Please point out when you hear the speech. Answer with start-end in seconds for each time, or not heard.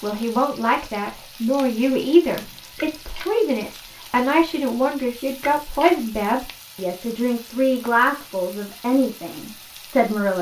0.0-10.3.